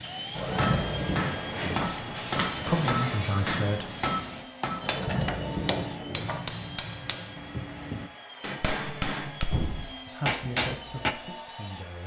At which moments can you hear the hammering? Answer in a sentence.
You can hear the hammering from 0.6 to 11.2 s.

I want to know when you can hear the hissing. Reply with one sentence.
You can hear the hissing from 0.0 to 4.5 s.